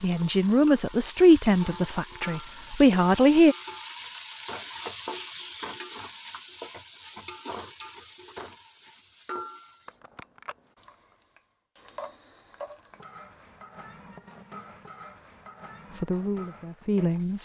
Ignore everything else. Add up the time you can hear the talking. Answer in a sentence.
You can hear the talking for 5 seconds altogether.